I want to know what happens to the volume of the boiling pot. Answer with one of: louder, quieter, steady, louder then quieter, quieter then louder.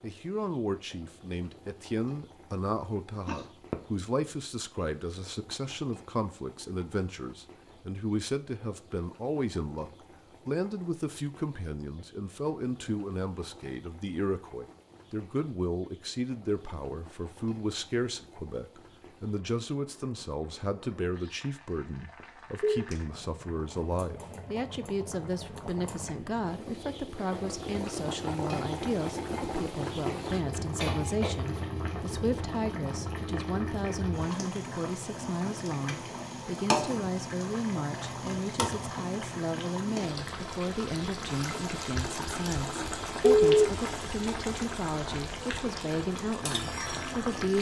louder.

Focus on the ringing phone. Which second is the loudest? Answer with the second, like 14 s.
43 s.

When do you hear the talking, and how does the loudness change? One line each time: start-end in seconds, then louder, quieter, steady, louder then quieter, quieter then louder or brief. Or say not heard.
0.0-47.5 steady.